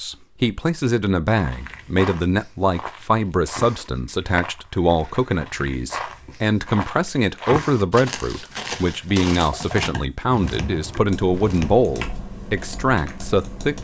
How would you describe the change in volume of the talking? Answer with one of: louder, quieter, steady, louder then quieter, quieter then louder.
steady.